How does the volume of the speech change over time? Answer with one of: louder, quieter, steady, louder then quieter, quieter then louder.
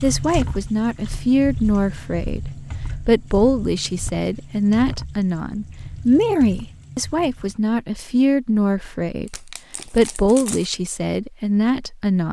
steady.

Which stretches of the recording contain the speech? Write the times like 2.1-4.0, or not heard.
0.0-12.2.